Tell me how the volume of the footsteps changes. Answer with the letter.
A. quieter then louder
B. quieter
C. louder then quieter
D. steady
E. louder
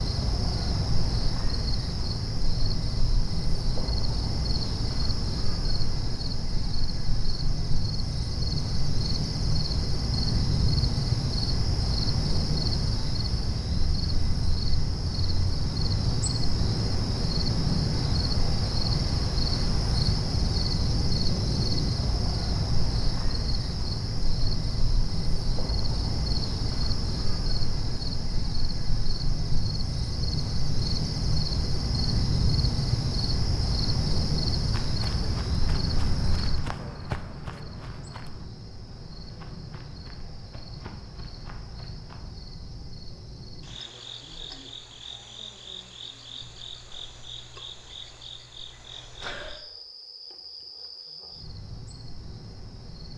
B.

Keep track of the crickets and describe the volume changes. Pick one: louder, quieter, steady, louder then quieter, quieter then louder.
quieter.